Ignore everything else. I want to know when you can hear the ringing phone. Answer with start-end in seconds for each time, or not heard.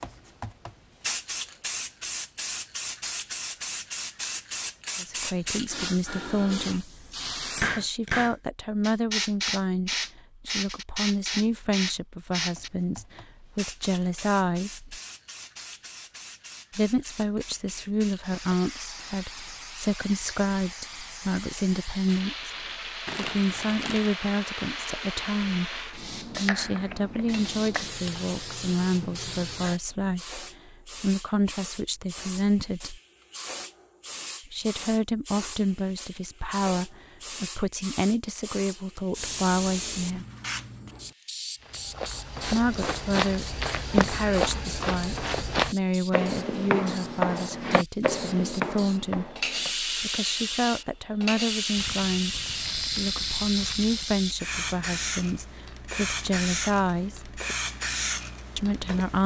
not heard.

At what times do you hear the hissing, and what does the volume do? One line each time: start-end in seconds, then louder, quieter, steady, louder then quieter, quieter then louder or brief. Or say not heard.
0.0-59.2 quieter then louder.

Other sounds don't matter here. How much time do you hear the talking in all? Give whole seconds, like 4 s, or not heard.
48 s.